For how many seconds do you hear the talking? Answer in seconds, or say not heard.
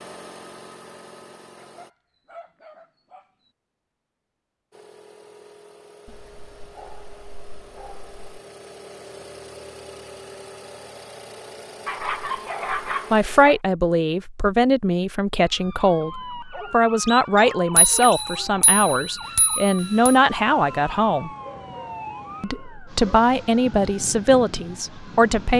11 s.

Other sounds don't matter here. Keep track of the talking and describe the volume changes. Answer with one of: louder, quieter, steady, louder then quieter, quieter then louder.
steady.